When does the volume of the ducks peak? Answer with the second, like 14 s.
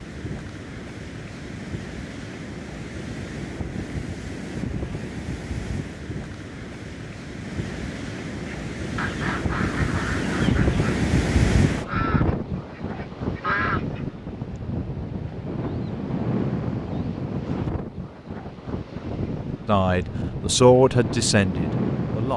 14 s.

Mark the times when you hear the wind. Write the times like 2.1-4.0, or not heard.
0.0-22.3.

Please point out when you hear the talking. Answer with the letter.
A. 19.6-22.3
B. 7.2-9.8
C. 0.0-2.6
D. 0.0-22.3
A.